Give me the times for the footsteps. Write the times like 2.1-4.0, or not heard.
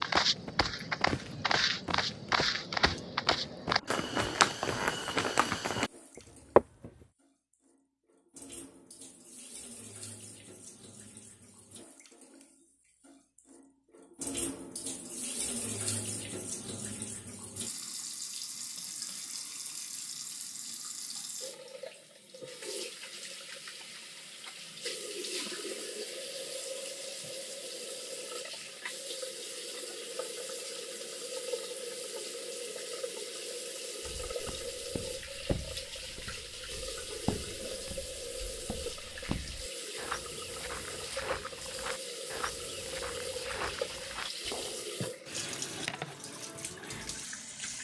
0.0-6.9, 34.0-44.9.